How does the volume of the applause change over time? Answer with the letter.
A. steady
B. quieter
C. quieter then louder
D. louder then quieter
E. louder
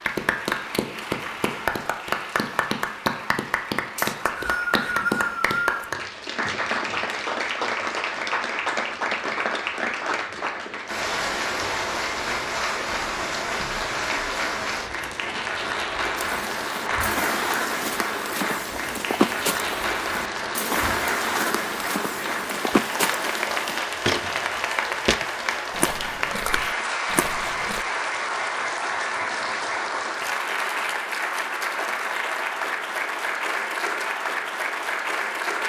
A.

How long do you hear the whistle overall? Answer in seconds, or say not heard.
2 s.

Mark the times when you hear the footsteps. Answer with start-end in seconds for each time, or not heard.
16.1-27.9.